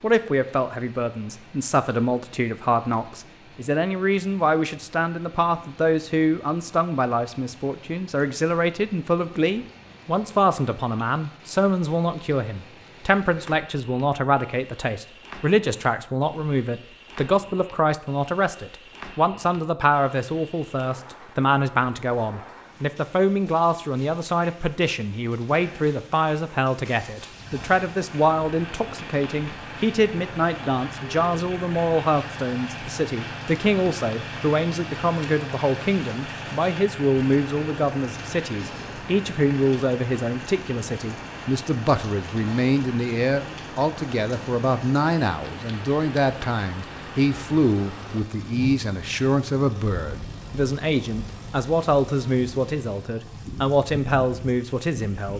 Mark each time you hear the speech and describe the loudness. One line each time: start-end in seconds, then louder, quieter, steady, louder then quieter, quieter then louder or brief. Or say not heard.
0.0-55.3 steady.